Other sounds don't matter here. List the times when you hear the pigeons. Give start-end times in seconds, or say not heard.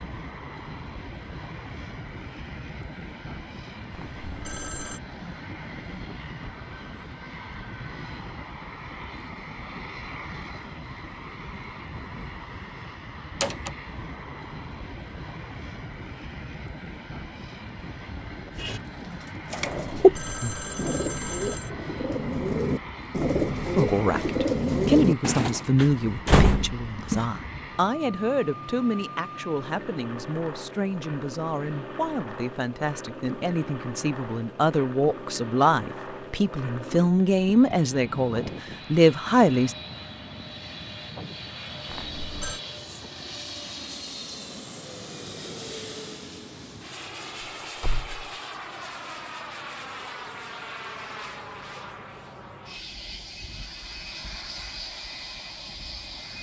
18.6-25.6.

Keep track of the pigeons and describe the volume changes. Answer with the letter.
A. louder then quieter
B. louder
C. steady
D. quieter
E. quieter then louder
E.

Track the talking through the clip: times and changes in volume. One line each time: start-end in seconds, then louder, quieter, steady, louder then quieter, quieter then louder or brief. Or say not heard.
23.8-39.8 quieter then louder.